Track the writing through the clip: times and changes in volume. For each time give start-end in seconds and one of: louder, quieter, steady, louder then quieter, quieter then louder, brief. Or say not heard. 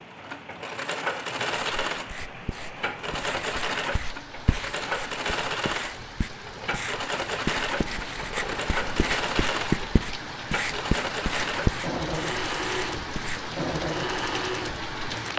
1.5-13.5 louder.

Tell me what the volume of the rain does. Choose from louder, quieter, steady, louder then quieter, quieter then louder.
louder.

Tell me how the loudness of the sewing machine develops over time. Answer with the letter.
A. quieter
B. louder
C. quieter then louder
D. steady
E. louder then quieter
D.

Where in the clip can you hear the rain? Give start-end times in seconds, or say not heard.
0.0-15.3.